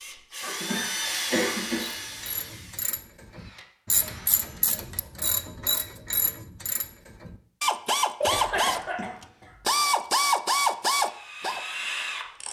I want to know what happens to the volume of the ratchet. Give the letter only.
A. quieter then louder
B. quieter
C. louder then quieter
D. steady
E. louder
E.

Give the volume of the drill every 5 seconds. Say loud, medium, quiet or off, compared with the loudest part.
loud, off, loud.